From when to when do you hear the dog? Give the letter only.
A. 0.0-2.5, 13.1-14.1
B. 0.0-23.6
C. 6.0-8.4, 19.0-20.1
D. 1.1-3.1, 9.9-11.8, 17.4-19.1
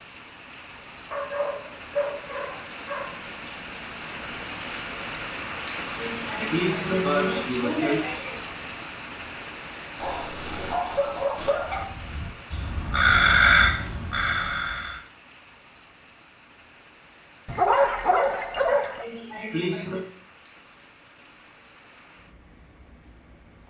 D.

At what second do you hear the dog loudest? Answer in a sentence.
The loudest moment of the dog is at 18 seconds.